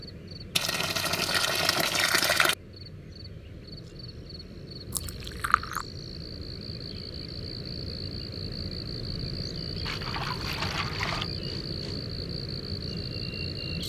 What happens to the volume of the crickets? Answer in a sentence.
The volume of the crickets goes up.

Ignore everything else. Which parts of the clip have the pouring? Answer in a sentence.
You can hear the pouring from 0.6 to 2.5 s, from 4.9 to 5.8 s and from 9.8 to 11.3 s.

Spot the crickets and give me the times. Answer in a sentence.
You can hear the crickets from 0.0 to 13.8 s.